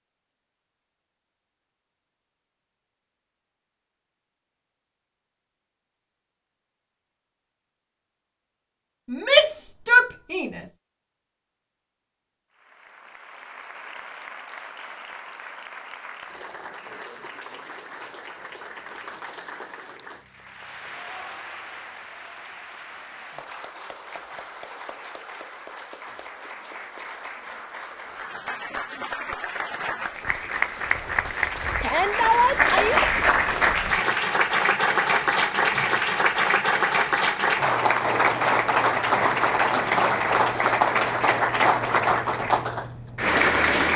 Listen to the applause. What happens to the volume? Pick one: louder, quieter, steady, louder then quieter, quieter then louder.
louder.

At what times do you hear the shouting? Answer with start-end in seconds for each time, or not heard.
9.1-10.6, 31.8-33.0.